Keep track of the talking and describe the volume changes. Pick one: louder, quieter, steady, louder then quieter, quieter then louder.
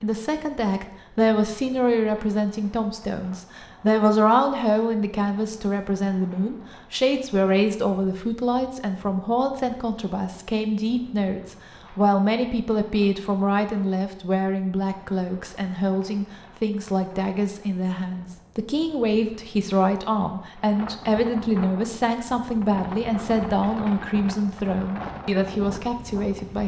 steady.